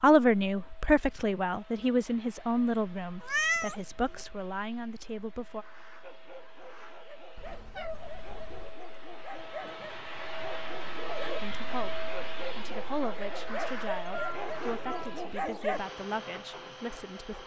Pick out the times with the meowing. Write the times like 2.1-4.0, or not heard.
3.2-4.2, 7.3-8.8, 14.1-15.2.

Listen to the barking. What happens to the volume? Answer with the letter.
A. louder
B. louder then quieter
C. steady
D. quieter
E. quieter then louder
A.